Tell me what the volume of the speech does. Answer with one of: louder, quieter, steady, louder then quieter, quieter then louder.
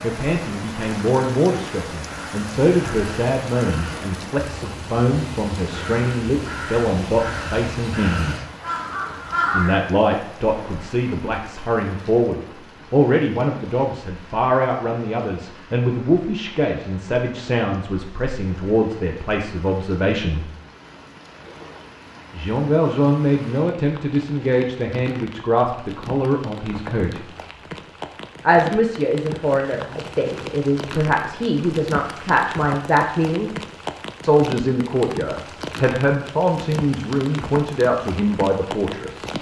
steady.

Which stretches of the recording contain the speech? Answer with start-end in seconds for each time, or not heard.
0.0-8.4, 9.5-20.4, 22.3-27.2, 28.4-33.5, 34.2-39.2.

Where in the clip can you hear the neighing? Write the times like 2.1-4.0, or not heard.
not heard.